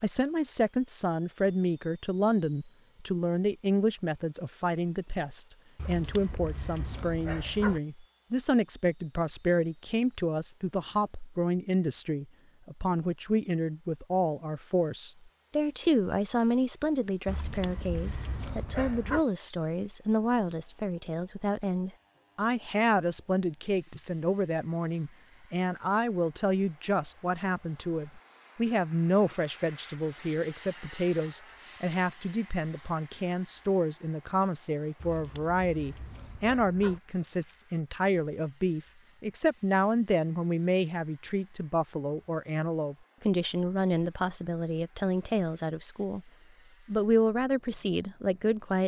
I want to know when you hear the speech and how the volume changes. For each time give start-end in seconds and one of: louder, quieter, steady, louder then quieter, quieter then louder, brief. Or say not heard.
0.0-46.2 steady
46.9-48.8 brief.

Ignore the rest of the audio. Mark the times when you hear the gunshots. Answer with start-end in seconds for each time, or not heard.
not heard.